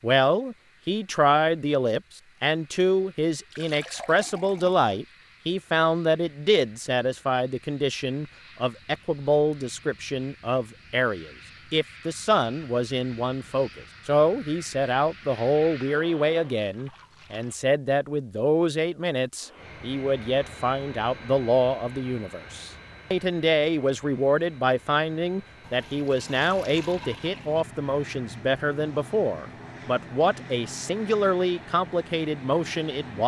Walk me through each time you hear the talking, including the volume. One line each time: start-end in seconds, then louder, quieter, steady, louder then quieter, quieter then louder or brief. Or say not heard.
0.0-33.2 steady.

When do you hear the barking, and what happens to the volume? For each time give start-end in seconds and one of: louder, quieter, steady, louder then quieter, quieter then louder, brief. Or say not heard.
not heard.